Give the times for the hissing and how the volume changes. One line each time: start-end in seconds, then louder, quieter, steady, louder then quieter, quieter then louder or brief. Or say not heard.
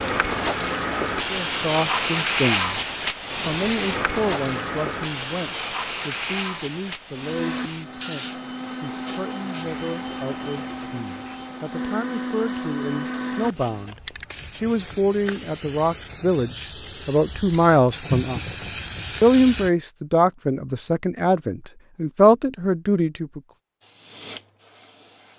0.0-19.7 quieter then louder
23.8-25.3 brief.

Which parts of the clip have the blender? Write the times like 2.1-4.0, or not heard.
7.2-13.9.